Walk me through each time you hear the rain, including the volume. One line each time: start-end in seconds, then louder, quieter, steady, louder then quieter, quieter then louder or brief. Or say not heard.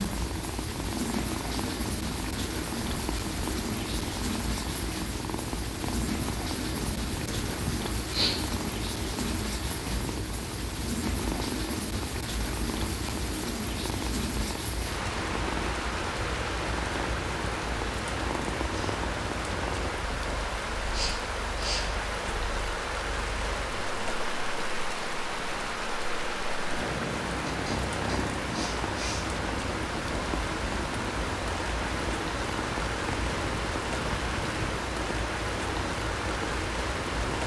0.0-37.4 steady.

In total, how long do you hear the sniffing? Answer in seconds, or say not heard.
4 s.